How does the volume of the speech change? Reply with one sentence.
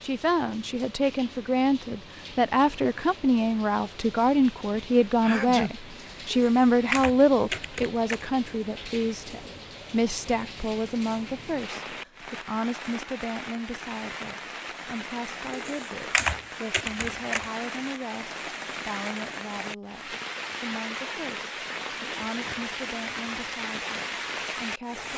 The loudness of the speech goes down.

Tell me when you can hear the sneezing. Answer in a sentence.
The sneezing can be heard from 5.2 to 5.7 s.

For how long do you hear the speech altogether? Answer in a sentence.
The speech can be heard for 25 seconds in total.